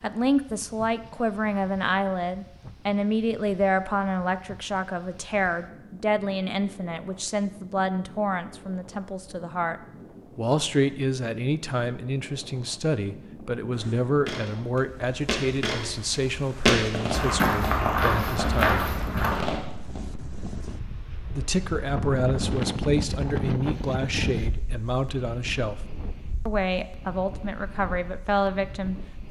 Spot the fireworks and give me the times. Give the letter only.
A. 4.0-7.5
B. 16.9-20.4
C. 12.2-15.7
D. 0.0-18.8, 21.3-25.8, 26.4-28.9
B.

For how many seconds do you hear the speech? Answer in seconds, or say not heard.
26 s.